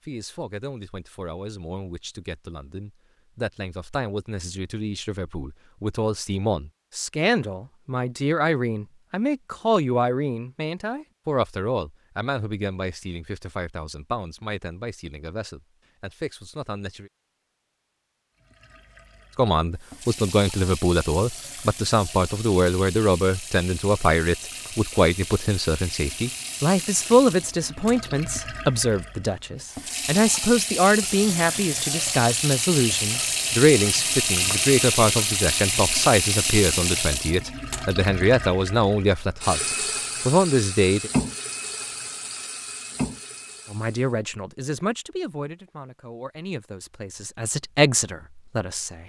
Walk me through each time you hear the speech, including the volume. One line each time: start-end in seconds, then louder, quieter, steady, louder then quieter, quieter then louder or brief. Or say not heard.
0.1-17.1 louder then quieter
19.4-41.1 steady
43.7-49.0 quieter then louder.